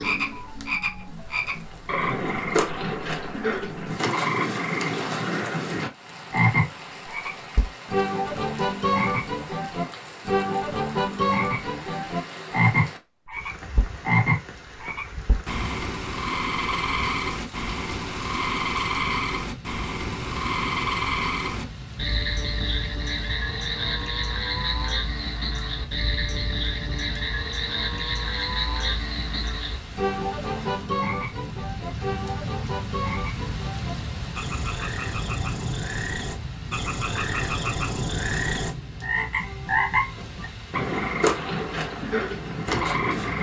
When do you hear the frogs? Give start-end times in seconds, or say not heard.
0.0-43.3.